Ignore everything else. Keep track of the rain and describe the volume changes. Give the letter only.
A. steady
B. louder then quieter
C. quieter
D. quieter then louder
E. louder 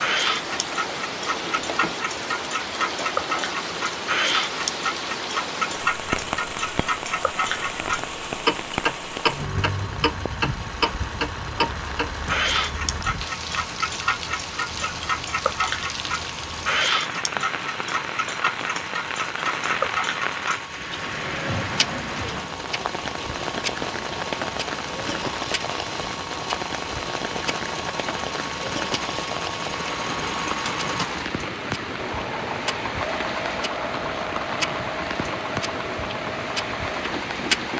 A.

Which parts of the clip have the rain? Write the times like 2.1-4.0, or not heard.
0.0-37.7.